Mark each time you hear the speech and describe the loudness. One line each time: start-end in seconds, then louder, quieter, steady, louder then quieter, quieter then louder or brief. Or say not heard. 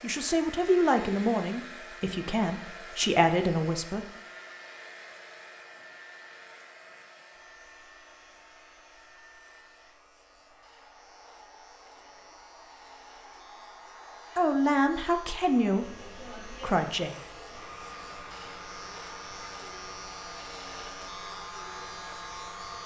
0.0-4.0 quieter then louder
14.3-17.1 brief.